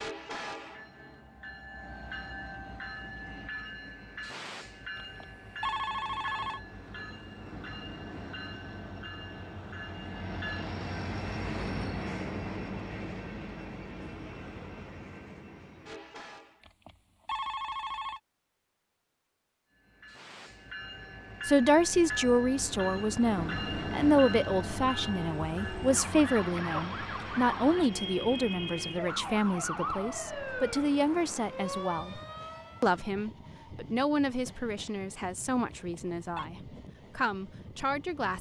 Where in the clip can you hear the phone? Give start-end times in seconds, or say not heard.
5.0-6.6, 16.6-18.2, 35.7-36.5.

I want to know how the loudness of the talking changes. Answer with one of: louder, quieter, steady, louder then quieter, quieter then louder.
quieter.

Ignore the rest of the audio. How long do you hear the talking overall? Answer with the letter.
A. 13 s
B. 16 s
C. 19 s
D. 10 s
B.